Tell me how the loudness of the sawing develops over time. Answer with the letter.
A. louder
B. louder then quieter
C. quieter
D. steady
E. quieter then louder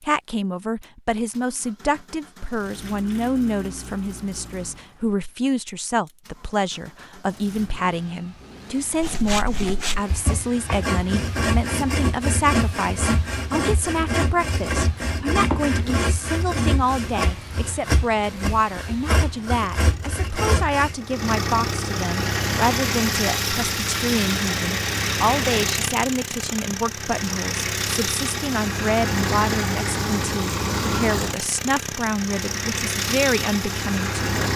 D.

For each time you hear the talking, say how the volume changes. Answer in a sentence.
You can hear the talking from 0.0 to 34.5 s, at a steady volume.